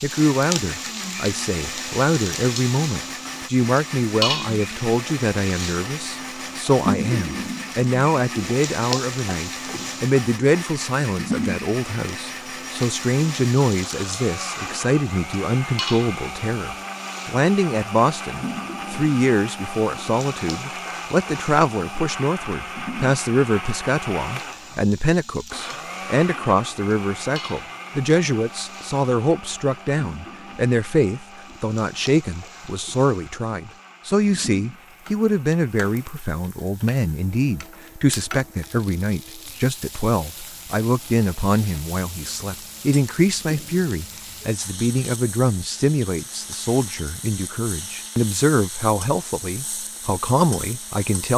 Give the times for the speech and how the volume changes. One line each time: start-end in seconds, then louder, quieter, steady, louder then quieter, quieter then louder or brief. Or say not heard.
0.0-51.3 steady.